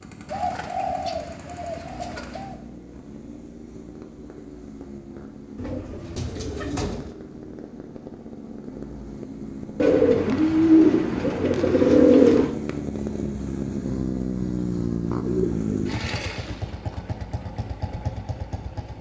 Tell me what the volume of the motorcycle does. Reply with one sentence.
The volume of the motorcycle goes up.